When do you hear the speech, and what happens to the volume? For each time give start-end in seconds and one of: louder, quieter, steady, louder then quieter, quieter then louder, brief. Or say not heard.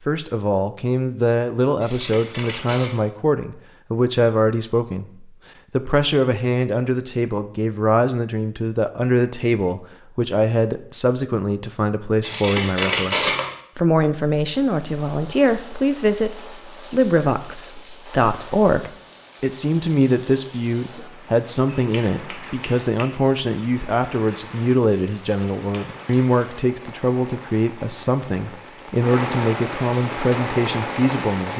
0.1-31.5 steady.